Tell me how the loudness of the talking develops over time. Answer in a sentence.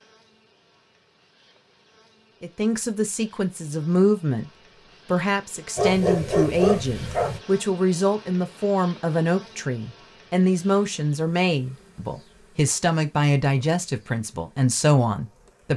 The loudness of the talking stays about the same.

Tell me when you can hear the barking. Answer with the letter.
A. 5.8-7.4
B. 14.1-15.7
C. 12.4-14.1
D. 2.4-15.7
A.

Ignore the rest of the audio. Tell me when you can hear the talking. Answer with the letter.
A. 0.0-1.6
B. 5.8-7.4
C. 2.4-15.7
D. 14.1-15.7
C.